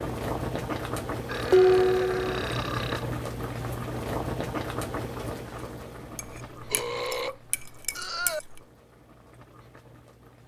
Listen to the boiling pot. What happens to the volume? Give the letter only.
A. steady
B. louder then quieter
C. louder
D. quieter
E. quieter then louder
D.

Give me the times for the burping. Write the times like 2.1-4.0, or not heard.
1.2-3.0, 6.4-8.4.